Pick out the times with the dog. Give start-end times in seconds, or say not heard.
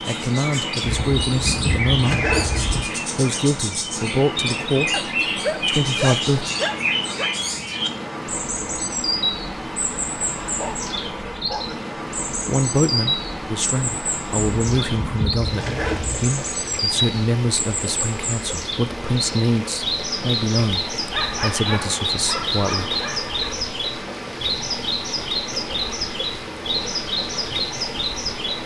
4.9-7.3, 10.4-11.8, 21.1-23.4.